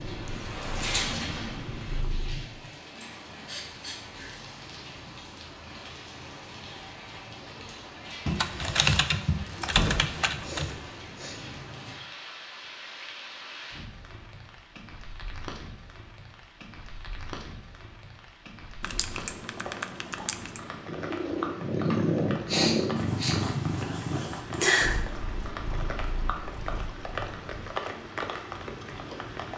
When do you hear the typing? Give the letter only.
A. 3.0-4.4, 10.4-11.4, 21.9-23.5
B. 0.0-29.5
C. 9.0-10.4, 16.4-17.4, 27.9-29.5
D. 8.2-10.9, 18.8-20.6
D.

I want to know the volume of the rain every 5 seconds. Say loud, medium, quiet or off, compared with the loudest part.
loud, medium, medium, medium, loud, loud.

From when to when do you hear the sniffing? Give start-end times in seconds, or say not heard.
3.0-4.4, 10.4-11.4, 21.9-23.5.